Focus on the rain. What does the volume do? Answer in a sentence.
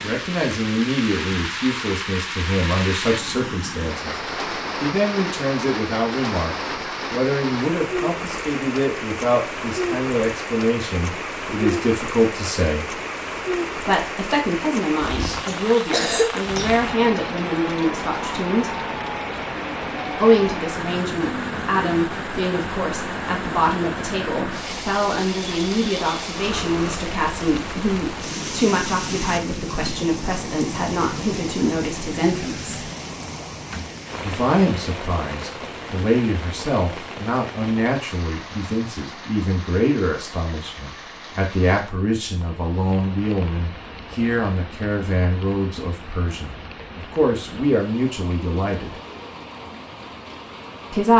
The loudness of the rain goes down.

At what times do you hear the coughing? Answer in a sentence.
The coughing can be heard from 15.1 to 16.8 s.